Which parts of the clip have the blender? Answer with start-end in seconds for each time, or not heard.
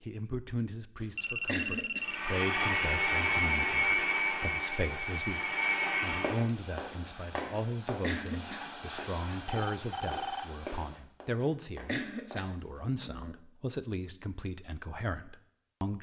2.0-6.5.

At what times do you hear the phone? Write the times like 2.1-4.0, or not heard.
1.1-2.2, 9.4-10.5.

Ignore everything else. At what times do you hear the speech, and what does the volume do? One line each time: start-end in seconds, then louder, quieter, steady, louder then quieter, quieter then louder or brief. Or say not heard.
0.0-15.9 steady.